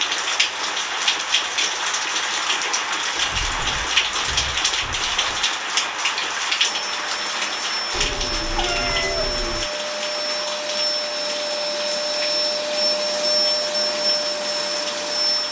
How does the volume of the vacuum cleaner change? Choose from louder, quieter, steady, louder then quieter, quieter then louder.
louder.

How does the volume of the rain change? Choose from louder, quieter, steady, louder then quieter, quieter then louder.
quieter.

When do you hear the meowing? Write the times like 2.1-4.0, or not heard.
3.1-5.5, 7.9-9.7.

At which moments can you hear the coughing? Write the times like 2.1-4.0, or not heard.
not heard.